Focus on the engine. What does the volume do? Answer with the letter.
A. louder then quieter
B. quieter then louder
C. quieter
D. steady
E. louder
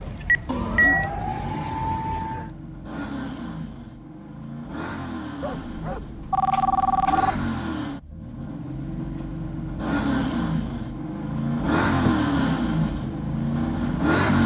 E.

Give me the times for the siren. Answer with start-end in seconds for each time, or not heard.
0.0-2.5.